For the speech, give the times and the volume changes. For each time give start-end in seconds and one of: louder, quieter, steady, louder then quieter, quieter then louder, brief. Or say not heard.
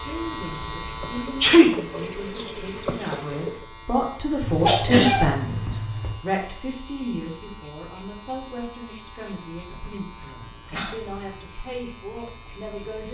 0.0-13.0 louder then quieter.